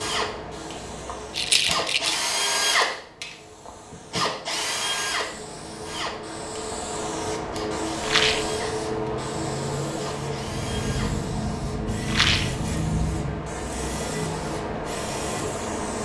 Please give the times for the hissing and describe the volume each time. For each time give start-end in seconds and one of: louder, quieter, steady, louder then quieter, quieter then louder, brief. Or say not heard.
0.0-16.0 louder.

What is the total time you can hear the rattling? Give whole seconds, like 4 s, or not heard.
2 s.